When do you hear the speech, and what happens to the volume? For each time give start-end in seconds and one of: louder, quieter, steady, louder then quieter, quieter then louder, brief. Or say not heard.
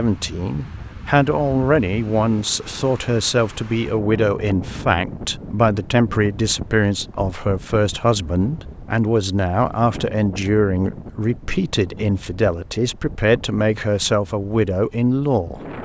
0.0-15.7 steady.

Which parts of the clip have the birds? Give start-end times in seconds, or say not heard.
not heard.